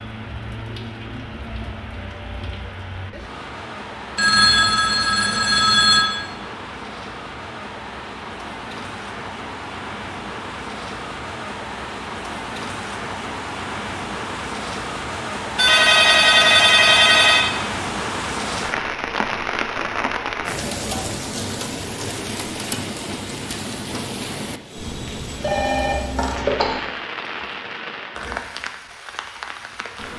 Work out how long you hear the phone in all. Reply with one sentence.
You can hear the phone for 5 seconds altogether.